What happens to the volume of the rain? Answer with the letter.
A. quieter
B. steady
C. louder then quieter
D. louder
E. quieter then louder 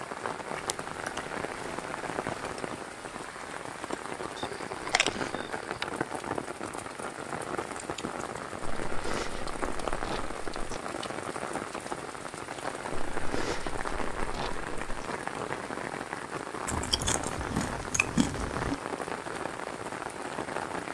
B.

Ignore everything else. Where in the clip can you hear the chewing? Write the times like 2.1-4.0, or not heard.
0.7-1.2, 4.8-5.8, 8.8-10.8, 12.9-15.1, 16.6-18.8.